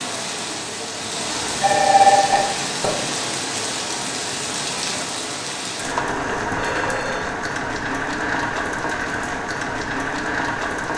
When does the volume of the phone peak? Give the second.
2 s.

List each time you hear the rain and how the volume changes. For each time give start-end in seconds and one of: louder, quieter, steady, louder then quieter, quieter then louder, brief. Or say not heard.
0.0-10.9 steady.